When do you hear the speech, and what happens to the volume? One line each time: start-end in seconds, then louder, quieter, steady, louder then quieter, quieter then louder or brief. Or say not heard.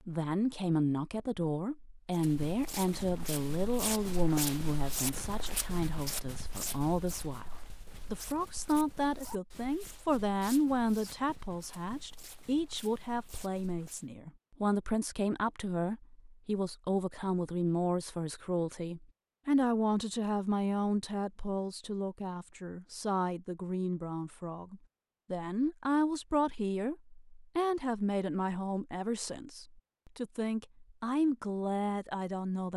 0.1-32.7 steady.